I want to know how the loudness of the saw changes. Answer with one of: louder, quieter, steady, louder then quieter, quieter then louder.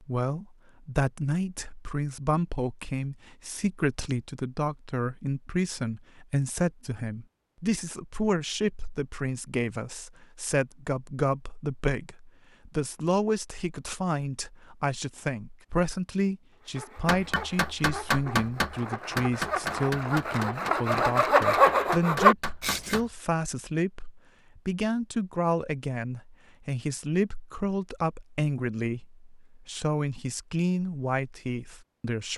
louder.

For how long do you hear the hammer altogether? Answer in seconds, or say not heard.
6 s.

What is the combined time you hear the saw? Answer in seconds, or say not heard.
6 s.